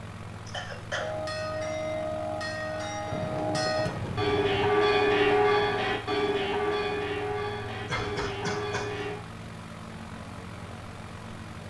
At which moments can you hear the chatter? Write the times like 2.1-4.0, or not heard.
not heard.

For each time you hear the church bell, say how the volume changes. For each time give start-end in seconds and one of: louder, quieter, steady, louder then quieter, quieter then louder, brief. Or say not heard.
0.9-9.2 louder then quieter.